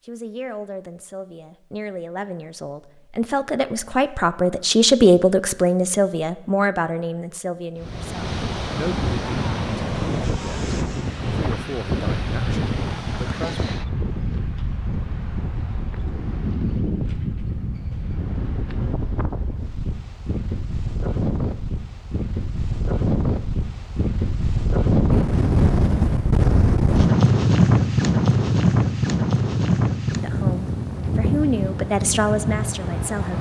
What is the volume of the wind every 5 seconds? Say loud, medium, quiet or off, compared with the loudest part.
off, medium, medium, medium, medium, loud, medium.